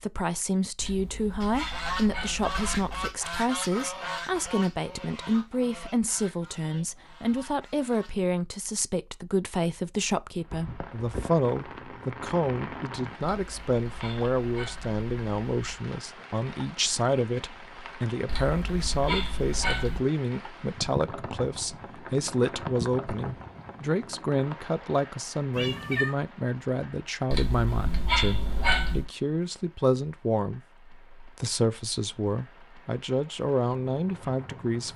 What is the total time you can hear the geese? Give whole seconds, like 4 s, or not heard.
7 s.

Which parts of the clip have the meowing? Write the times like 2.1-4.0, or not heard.
25.5-26.1.